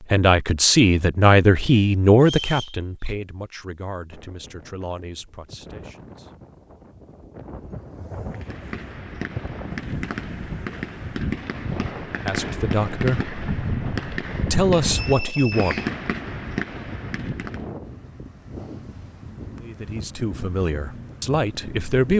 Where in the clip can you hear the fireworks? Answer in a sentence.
You can hear the fireworks from 8.2 to 17.7 s.